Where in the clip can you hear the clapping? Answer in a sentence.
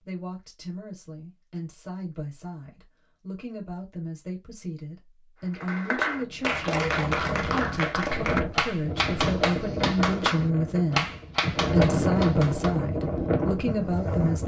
The clapping can be heard from 5.4 to 12.8 s.